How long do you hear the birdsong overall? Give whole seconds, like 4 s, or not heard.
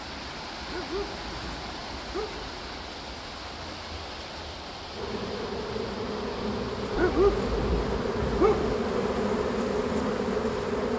not heard.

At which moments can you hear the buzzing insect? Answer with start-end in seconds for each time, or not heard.
4.9-10.9.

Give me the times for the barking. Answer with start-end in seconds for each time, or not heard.
0.7-2.5, 7.0-8.8.